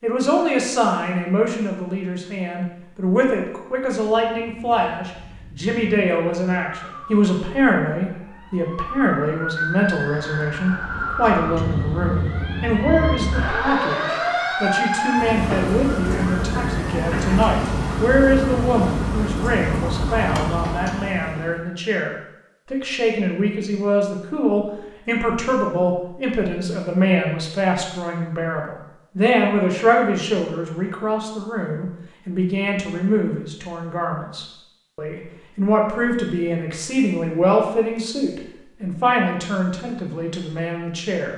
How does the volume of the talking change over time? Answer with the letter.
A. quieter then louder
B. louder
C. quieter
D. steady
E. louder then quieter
D.